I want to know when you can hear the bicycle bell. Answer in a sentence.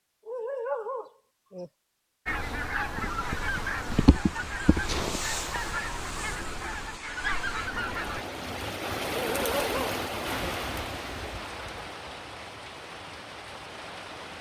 You can't hear the bicycle bell here.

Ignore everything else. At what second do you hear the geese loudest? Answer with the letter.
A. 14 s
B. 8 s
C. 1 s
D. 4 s
D.